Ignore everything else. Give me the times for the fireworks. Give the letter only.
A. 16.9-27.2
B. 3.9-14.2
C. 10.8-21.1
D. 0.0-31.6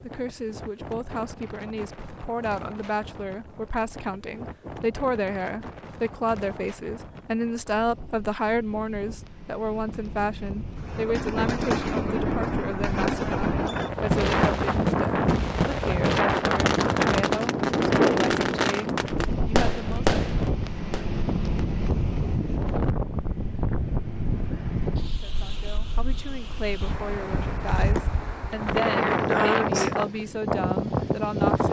C.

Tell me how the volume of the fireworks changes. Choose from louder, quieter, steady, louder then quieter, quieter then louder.
steady.